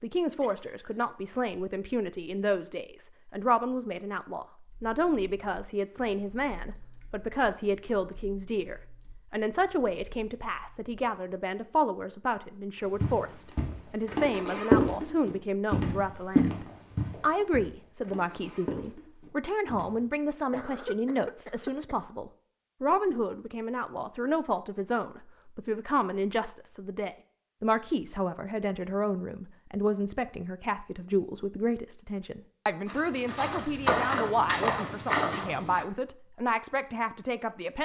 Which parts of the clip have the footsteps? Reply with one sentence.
You can hear the footsteps from 12.9 to 20.1 s and from 32.9 to 35.9 s.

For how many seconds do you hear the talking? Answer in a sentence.
The talking can be heard for 38 seconds in total.